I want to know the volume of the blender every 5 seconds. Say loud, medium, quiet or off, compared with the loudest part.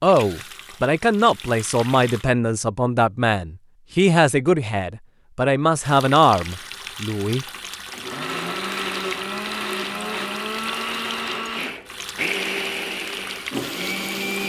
off, loud, loud.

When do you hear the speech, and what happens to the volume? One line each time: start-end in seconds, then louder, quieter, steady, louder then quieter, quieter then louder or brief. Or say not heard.
0.0-7.5 steady.